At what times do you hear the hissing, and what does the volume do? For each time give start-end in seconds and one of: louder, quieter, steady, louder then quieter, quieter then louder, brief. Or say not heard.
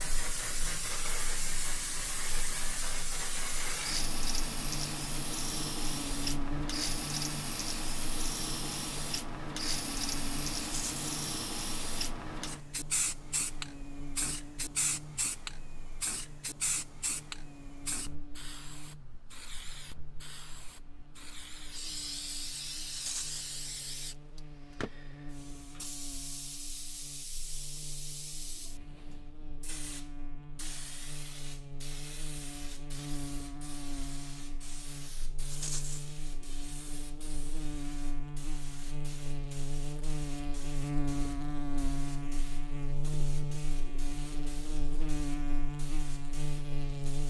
0.0-47.2 quieter.